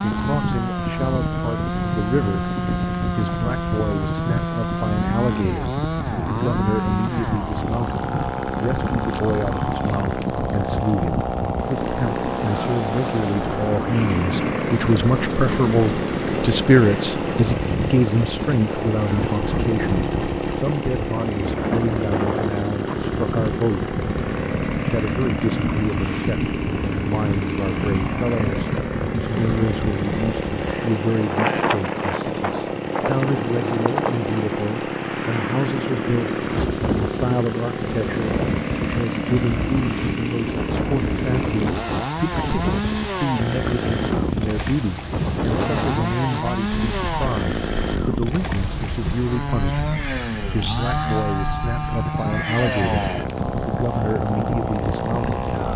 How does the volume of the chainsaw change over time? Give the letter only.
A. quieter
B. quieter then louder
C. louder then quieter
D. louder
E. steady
E.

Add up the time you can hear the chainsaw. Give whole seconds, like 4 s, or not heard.
56 s.